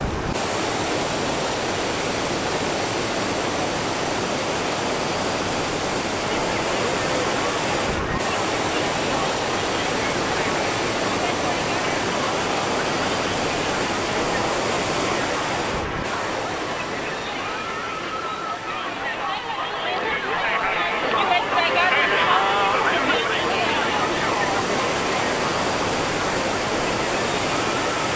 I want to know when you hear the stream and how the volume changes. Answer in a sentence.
You can hear the stream from 0.0 to 28.1 s, getting quieter then louder.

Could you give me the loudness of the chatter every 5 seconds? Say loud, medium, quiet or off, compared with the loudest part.
off, medium, medium, medium, loud, medium.